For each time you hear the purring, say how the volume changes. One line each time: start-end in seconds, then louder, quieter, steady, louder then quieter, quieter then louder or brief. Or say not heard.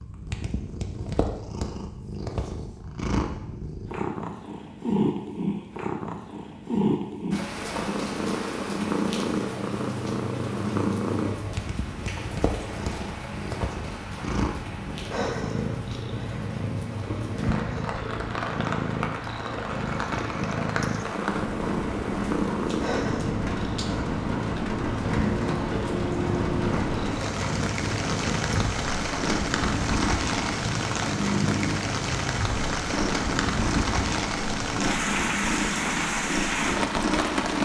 0.0-37.5 steady.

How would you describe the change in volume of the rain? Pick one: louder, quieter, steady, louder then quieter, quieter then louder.
louder.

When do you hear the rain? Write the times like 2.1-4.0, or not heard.
7.3-37.5.